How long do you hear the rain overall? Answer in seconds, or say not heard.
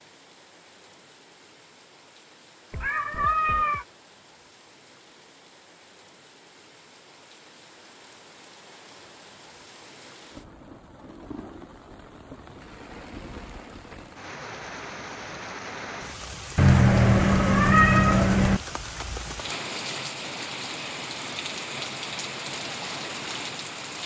24 s.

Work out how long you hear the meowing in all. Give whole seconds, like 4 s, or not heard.
3 s.